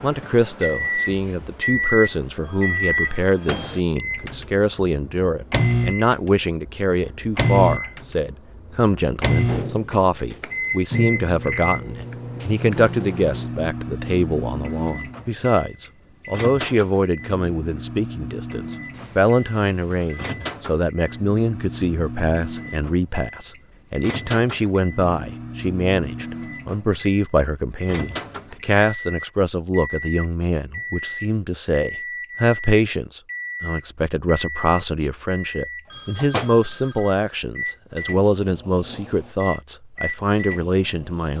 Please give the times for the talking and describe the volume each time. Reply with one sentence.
You can hear the talking from 0.0 to 41.3 s, at a steady volume.